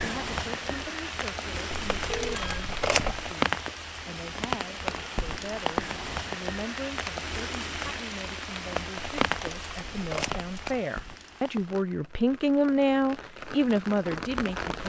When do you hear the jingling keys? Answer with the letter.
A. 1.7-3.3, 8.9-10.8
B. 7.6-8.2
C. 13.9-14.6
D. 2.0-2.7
A.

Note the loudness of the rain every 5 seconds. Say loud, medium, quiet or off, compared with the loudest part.
loud, loud, medium.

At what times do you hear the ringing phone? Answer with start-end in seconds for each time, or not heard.
2.0-2.7.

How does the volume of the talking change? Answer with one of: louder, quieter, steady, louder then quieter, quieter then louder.
louder.